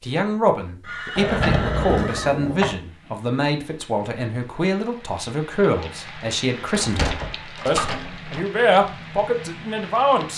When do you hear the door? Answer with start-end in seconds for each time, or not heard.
1.1-2.8, 6.7-8.4.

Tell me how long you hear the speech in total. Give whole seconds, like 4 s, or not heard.
10 s.